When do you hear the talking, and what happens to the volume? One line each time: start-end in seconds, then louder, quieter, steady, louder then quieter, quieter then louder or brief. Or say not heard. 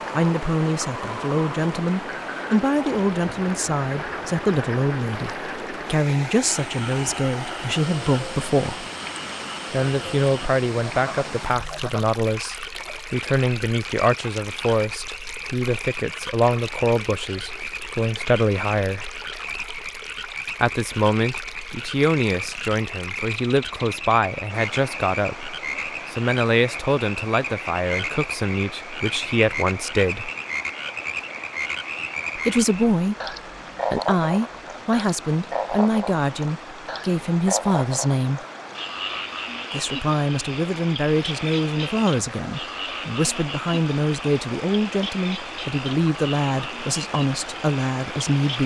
0.1-8.8 steady
9.7-19.1 steady
20.6-30.3 steady
32.4-38.4 steady
39.7-48.6 steady.